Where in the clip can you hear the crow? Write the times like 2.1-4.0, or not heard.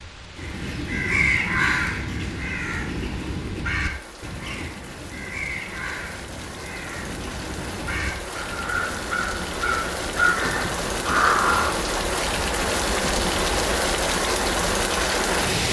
0.3-11.9.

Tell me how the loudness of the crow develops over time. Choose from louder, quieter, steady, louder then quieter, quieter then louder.
quieter then louder.